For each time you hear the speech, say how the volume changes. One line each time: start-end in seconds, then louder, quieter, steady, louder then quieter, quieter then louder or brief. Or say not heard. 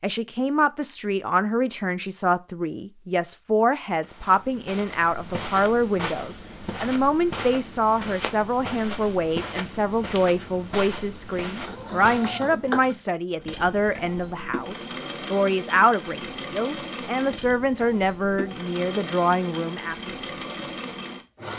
0.0-20.1 steady.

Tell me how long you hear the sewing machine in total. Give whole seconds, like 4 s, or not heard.
10 s.